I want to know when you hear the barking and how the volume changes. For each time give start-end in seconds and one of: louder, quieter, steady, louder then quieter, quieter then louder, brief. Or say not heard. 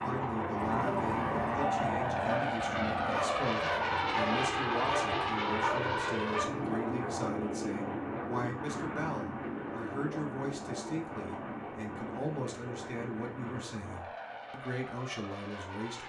0.6-6.8 steady.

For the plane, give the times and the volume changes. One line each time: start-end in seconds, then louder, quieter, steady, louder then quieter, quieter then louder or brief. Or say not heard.
0.0-16.0 quieter.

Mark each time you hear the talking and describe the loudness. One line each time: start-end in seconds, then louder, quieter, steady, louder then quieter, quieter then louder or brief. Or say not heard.
0.0-16.0 steady.